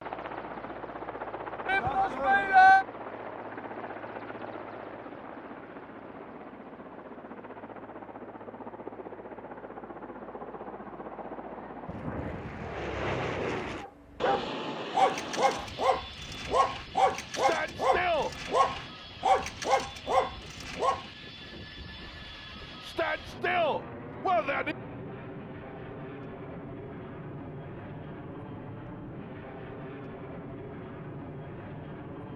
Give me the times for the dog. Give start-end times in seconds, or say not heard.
13.8-21.1.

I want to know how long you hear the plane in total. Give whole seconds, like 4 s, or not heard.
32 s.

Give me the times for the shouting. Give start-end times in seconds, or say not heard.
1.6-2.9, 17.3-18.4, 22.8-24.8.